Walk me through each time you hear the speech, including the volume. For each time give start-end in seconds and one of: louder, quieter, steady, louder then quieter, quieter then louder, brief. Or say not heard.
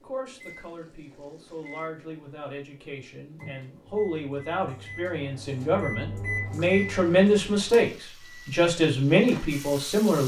0.0-10.2 louder.